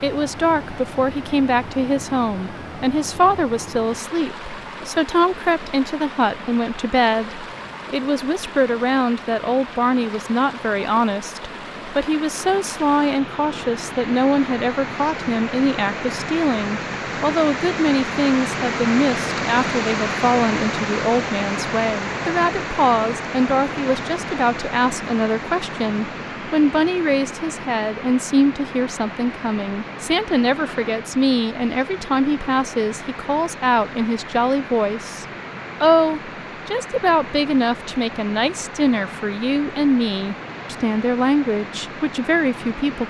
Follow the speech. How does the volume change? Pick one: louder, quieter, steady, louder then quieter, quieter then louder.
steady.